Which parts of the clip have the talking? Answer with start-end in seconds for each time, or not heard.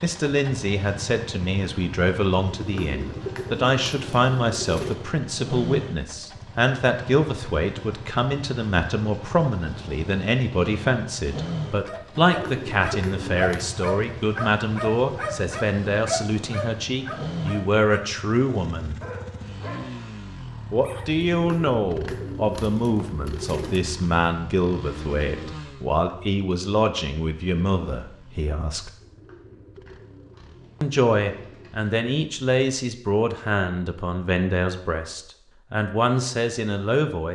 0.0-18.9, 20.7-28.9, 30.8-37.3.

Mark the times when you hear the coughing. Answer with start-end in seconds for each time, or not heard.
not heard.